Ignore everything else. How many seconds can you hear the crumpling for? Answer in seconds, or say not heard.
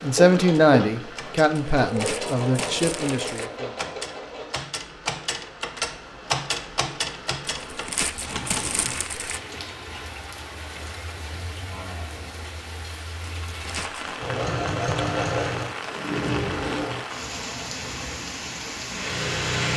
5 s.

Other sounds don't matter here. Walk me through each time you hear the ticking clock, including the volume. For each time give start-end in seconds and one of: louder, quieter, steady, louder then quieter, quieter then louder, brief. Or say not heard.
not heard.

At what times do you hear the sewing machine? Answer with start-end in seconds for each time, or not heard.
0.0-4.6, 14.2-19.7.